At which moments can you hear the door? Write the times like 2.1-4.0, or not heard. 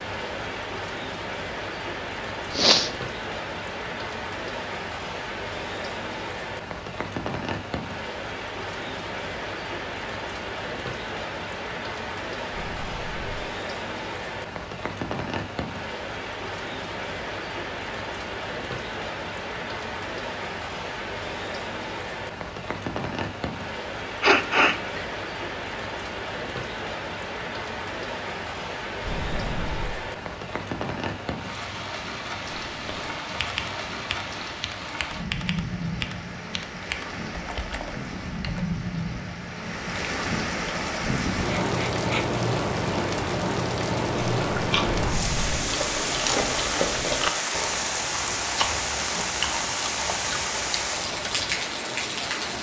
12.5-13.3, 29.0-30.1, 44.9-45.6.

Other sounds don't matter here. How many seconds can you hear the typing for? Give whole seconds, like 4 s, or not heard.
6 s.